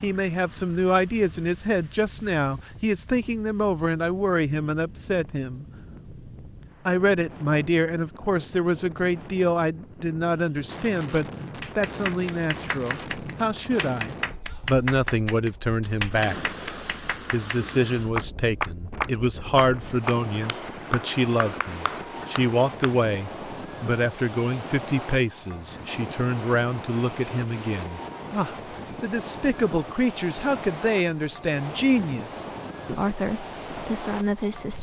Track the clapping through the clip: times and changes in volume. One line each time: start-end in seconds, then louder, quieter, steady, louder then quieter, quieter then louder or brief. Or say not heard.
11.6-22.9 louder then quieter.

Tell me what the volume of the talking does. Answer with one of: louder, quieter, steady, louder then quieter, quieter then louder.
steady.